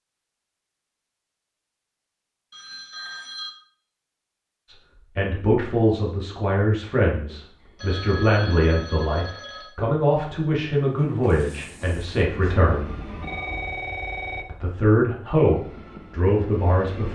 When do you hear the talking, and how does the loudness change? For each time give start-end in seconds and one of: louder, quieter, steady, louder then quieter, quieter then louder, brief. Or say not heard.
4.7-12.9 steady
14.4-17.0 brief.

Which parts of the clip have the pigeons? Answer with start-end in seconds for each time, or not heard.
not heard.